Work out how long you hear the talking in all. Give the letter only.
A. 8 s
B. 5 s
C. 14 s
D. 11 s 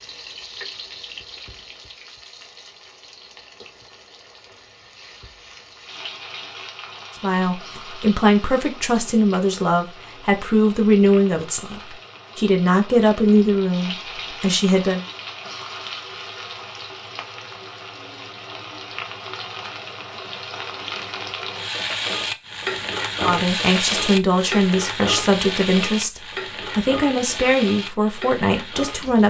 C.